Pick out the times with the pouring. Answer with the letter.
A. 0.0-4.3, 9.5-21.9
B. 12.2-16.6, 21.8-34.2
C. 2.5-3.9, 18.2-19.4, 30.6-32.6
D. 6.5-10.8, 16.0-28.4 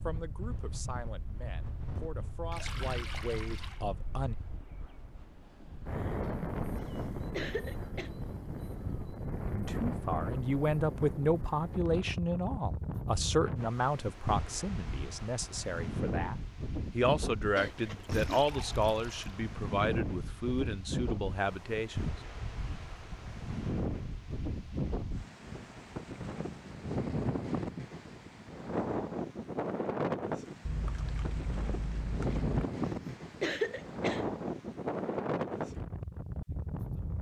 C.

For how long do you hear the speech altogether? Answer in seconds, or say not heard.
17 s.